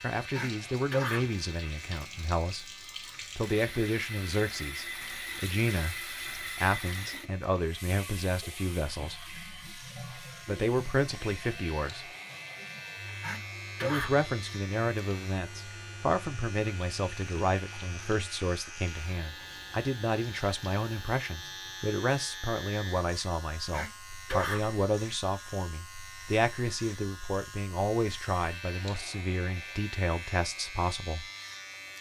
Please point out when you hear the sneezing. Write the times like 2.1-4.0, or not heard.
0.3-1.4, 13.2-14.2, 23.7-24.7.